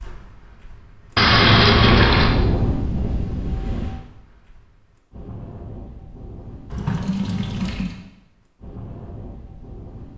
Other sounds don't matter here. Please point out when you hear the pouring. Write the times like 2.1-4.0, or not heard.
1.1-2.4, 6.7-8.0.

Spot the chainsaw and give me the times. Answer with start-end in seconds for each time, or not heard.
not heard.